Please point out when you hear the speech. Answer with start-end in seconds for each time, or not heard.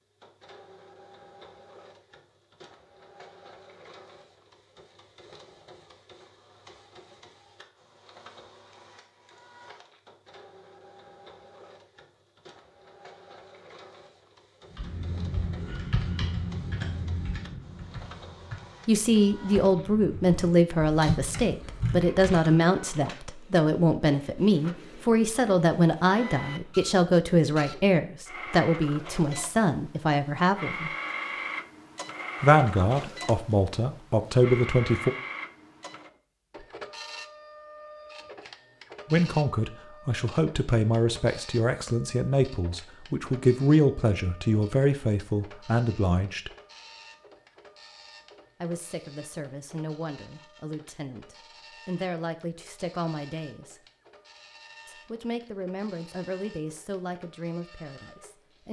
18.9-30.9, 32.4-35.1, 39.1-46.5, 48.6-53.8, 54.9-58.6.